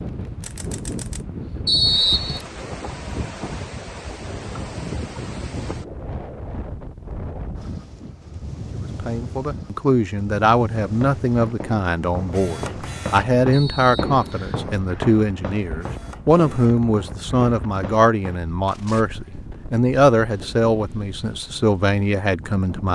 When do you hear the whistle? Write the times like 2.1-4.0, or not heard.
1.6-2.5, 13.5-14.7.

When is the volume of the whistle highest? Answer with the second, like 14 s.
2 s.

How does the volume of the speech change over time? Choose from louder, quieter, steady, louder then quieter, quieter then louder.
steady.